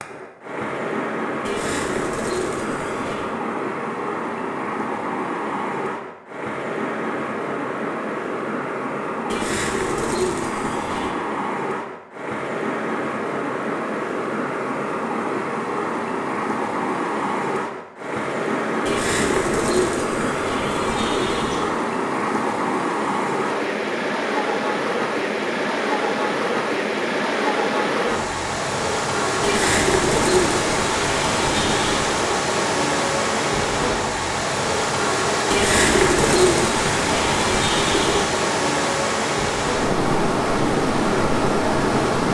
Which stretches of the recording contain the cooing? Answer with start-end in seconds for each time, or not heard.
1.4-3.3, 9.3-11.1, 18.9-21.7, 29.4-32.1, 35.5-38.3.